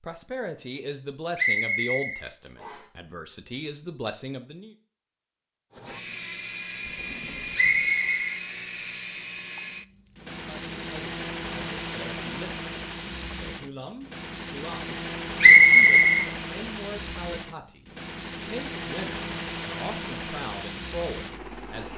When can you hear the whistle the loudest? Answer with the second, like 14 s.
16 s.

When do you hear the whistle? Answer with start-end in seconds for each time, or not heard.
1.4-2.8, 7.5-8.2, 15.4-16.2.